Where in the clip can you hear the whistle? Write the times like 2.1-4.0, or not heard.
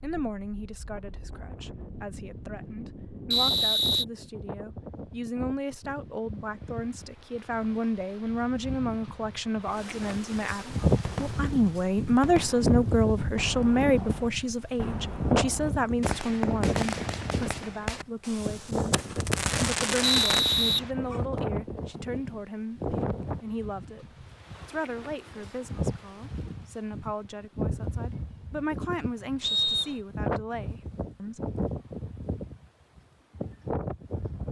3.3-4.0, 20.0-20.8, 29.4-29.9.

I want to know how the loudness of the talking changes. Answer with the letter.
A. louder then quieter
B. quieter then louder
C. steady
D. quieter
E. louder
A.